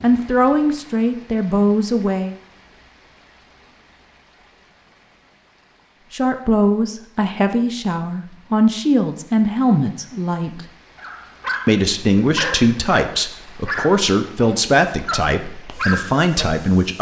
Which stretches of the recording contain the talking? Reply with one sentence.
You can hear the talking from 0.0 to 2.4 s, from 6.1 to 10.7 s and from 11.7 to 16.9 s.